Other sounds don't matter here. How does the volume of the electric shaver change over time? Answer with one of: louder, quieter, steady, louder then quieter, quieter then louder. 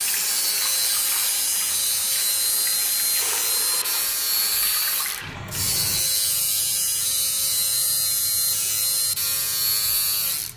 steady.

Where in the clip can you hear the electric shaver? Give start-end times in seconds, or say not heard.
0.0-10.5.